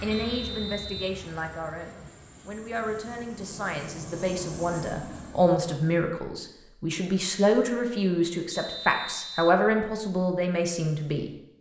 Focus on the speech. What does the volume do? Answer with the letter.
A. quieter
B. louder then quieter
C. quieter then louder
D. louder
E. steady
D.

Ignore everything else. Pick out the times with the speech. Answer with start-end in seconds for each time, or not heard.
0.0-11.3.